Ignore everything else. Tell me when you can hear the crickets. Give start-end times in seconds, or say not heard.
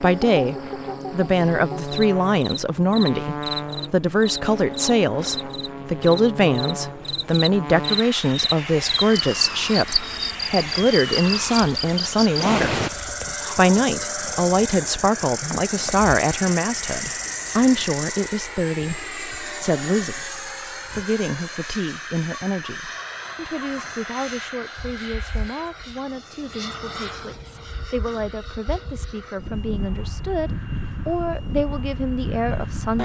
0.0-18.4.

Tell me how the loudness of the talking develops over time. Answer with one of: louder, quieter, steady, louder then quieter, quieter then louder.
quieter.